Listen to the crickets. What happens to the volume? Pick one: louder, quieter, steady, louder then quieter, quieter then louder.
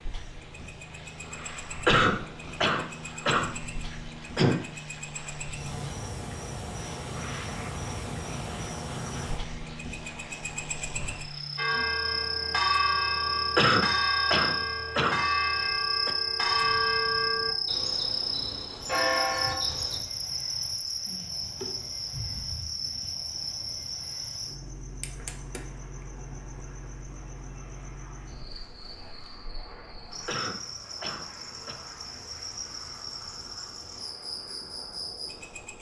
louder then quieter.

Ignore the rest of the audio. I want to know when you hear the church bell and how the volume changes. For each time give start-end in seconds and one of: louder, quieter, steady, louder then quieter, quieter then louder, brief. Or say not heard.
11.6-20.0 steady.